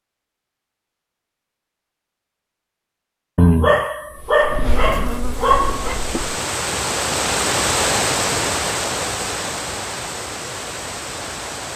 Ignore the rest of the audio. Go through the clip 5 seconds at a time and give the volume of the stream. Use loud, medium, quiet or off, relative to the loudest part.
off, loud, medium.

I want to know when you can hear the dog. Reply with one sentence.
The dog can be heard from 3.4 to 6.0 s.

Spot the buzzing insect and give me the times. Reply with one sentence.
The buzzing insect can be heard from 4.1 to 6.3 s.